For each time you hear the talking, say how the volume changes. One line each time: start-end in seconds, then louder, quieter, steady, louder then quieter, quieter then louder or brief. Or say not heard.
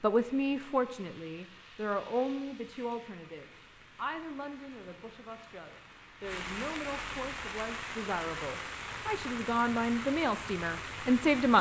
0.0-11.5 quieter then louder.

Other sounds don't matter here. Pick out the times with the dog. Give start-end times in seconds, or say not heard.
not heard.